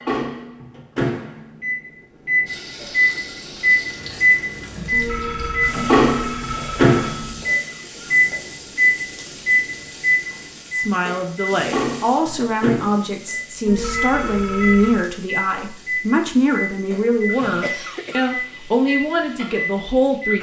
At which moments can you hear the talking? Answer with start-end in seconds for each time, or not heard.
10.7-20.3.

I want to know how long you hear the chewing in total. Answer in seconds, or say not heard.
not heard.